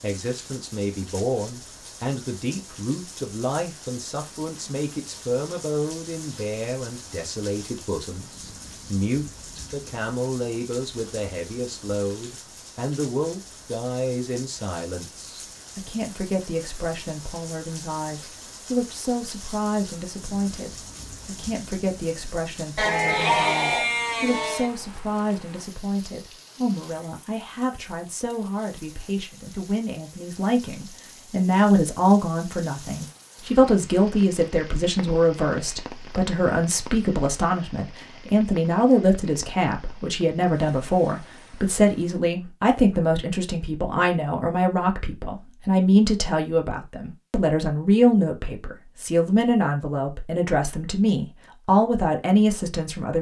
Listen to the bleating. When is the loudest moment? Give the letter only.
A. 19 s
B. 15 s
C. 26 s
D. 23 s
D.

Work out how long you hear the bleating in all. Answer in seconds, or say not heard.
2 s.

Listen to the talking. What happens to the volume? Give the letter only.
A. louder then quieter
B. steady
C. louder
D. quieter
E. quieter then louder
C.